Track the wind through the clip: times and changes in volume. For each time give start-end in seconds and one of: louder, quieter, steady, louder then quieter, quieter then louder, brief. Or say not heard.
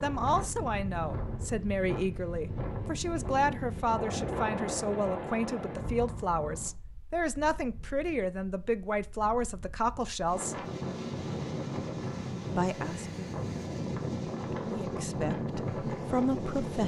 0.0-16.8 quieter then louder.